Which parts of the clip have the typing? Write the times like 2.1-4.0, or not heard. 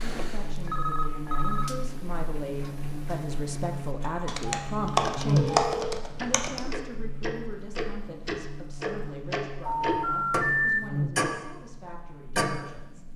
4.2-6.8.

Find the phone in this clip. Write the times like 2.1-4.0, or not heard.
0.1-1.7, 5.3-6.0, 9.7-10.8.